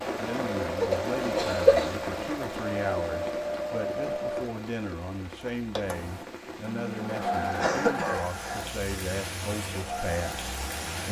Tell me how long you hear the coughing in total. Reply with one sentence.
You can hear the coughing for 2 seconds altogether.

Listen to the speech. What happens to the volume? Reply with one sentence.
The volume of the speech stays about the same.